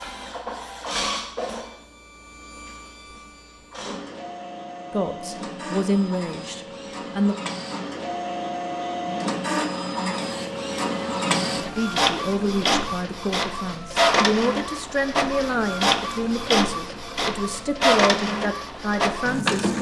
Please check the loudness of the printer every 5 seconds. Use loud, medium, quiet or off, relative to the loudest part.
medium, medium, loud, loud.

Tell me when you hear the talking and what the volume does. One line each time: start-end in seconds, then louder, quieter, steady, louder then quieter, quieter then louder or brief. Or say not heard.
4.9-7.3 brief
11.8-19.7 steady.